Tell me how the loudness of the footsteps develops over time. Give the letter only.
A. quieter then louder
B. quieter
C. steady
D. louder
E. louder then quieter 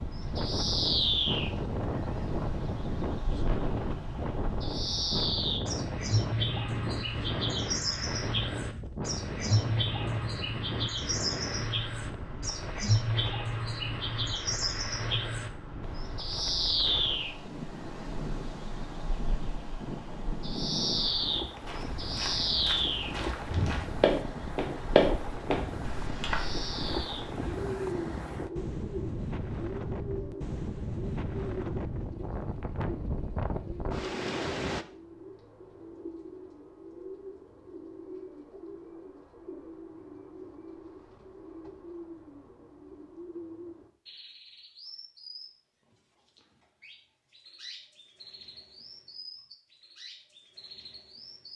E.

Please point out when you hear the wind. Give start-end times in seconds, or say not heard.
0.0-34.9.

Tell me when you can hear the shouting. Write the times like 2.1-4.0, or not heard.
not heard.